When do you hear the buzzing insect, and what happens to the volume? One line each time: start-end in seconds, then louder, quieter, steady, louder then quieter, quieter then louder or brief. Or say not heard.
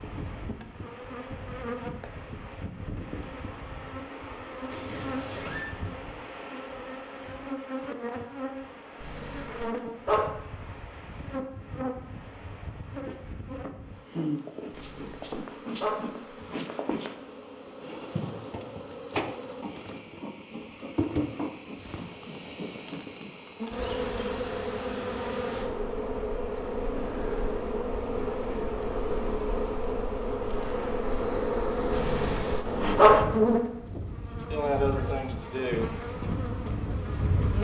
0.0-37.5 louder.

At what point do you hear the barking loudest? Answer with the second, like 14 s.
33 s.